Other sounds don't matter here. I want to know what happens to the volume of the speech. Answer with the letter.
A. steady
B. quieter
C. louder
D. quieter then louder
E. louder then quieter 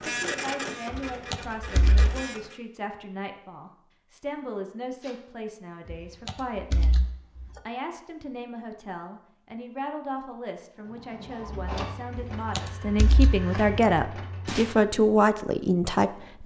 C.